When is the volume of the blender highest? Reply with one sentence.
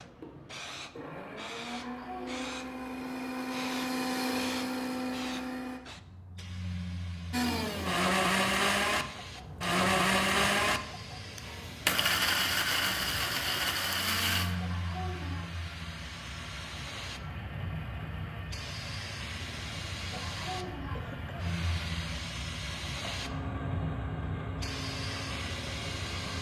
The volume of the blender peaks at 10 seconds.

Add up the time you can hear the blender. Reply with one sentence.
The blender can be heard for 25 seconds in total.